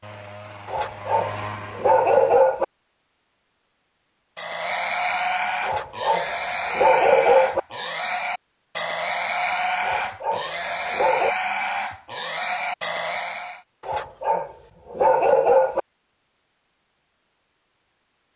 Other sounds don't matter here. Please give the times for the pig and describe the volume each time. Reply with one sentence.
The pig can be heard from 4.3 to 13.6 s, at a steady volume.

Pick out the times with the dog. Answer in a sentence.
You can hear the dog from 0.7 to 2.6 s, from 5.6 to 7.6 s, from 9.8 to 11.3 s and from 13.8 to 15.8 s.